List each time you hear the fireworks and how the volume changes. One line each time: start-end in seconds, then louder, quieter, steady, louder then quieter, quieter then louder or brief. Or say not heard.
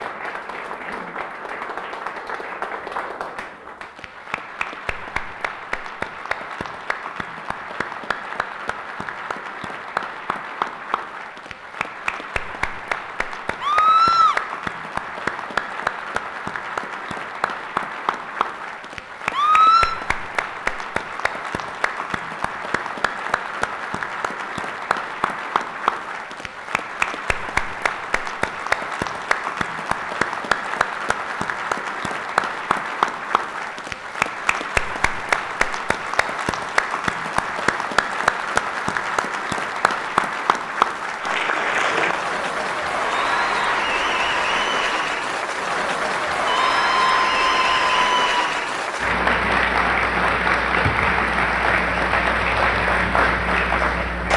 not heard.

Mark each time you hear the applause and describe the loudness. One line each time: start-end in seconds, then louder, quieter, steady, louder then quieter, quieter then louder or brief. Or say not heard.
0.0-54.3 louder.